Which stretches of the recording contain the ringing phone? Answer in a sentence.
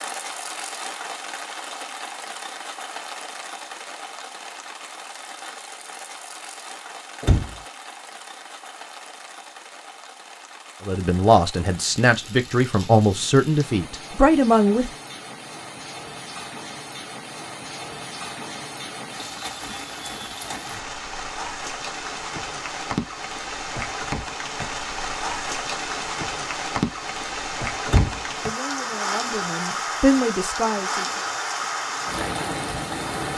The ringing phone can't be heard in this clip.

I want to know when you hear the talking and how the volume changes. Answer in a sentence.
The talking can be heard from 10.8 to 14.9 s, at a steady volume; and briefly from 28.4 to 31.2 s.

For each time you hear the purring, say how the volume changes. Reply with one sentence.
The purring can't be heard in this clip.